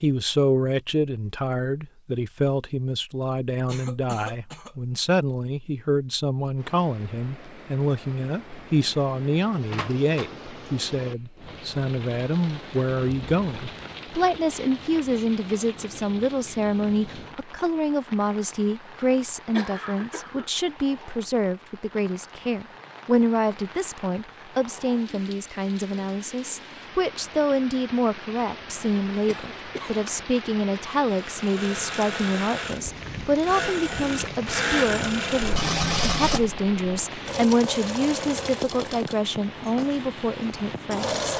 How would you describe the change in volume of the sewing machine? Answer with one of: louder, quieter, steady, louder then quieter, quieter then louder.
louder then quieter.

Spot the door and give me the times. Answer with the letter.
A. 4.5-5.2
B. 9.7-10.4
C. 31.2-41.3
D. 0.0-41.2
B.